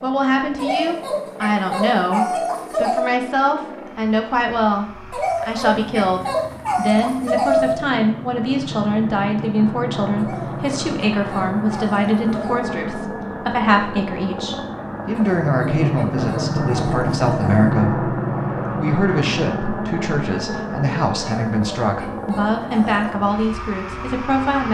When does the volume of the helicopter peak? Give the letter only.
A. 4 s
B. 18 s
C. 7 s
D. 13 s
B.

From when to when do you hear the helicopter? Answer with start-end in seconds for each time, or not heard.
0.0-24.6.